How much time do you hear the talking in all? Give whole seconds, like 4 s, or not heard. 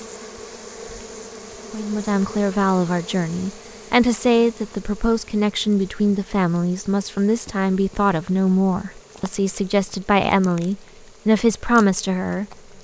11 s.